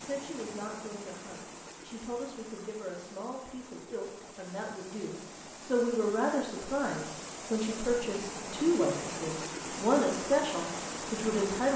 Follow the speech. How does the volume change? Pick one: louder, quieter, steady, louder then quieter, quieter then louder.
louder.